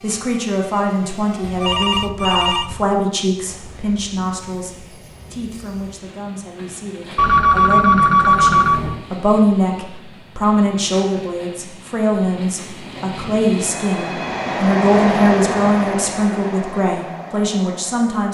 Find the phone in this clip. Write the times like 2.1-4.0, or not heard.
1.4-2.9, 7.2-9.1, 13.7-14.6.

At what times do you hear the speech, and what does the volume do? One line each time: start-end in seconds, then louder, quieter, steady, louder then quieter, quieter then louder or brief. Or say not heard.
0.0-18.2 quieter then louder.